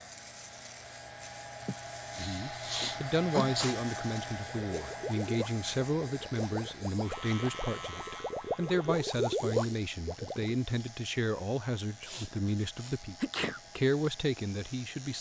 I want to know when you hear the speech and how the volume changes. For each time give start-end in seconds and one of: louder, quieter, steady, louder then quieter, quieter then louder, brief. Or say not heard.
2.1-13.2 steady
13.8-15.1 brief.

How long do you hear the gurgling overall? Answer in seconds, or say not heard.
6 s.